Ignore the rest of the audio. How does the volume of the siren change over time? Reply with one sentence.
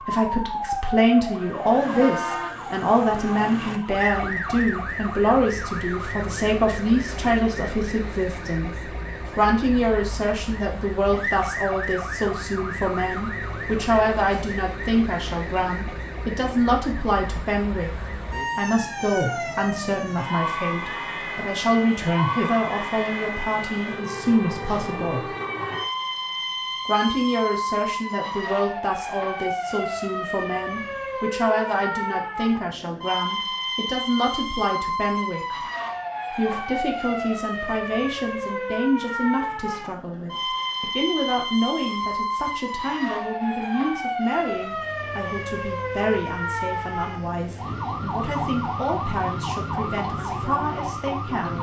The volume of the siren stays about the same.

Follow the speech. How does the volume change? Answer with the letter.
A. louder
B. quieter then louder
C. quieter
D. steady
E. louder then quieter
C.